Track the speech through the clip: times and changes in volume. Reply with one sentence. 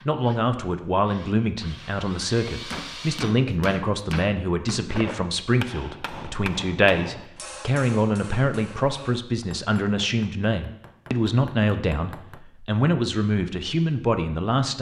The speech can be heard from 0.1 to 14.7 s, at a steady volume.